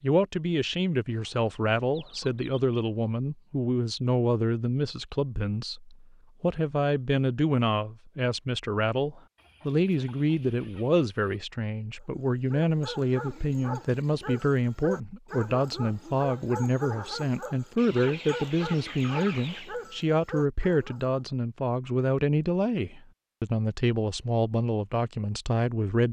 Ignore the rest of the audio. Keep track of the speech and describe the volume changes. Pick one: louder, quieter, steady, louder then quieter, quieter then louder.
steady.